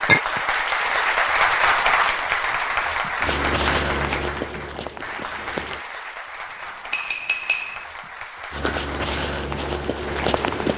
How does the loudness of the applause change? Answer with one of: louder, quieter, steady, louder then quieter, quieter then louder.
quieter.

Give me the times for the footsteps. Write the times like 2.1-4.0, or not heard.
3.2-5.8, 8.5-10.7.